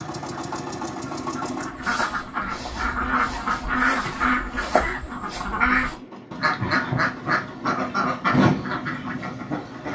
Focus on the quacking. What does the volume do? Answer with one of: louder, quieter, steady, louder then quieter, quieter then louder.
steady.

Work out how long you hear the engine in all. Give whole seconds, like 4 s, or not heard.
10 s.